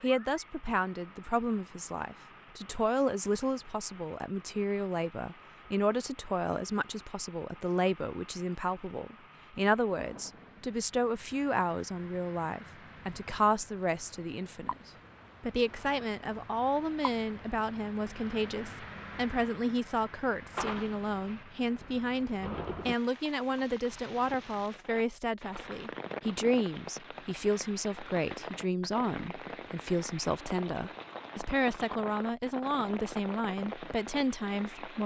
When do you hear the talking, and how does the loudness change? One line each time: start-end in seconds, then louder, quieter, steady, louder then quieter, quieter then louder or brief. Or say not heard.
0.0-35.0 steady.